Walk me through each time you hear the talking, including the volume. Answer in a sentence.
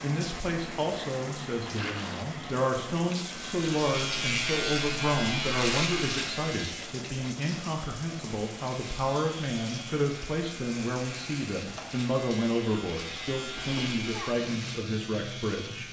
The talking can be heard from 0.0 to 15.8 s, at a steady volume.